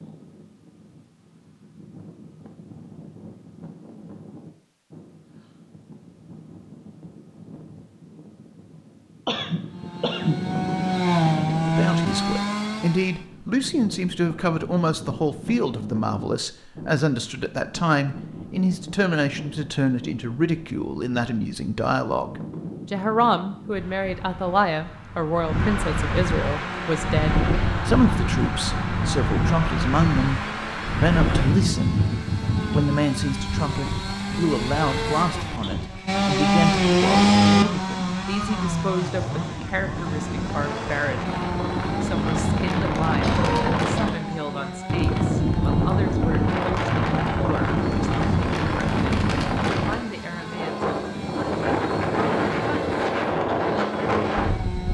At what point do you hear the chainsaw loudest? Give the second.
37 s.